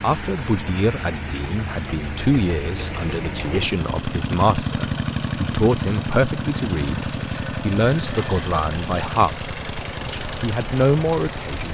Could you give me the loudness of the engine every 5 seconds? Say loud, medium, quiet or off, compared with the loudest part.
loud, loud, medium.